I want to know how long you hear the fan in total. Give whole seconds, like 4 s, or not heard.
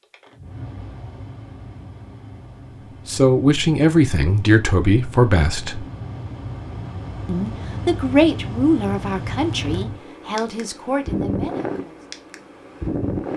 13 s.